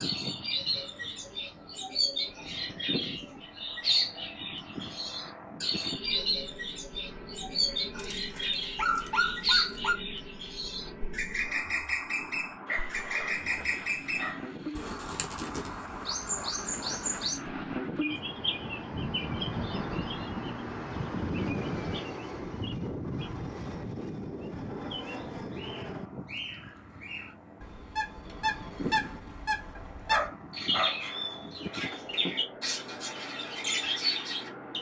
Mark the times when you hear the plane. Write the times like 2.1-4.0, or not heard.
0.0-34.7.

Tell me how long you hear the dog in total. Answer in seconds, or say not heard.
5 s.